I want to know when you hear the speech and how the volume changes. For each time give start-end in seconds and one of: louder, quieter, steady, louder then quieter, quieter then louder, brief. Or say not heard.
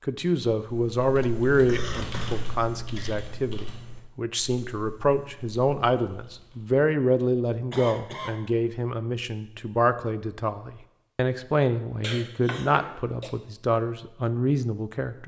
0.1-15.2 steady.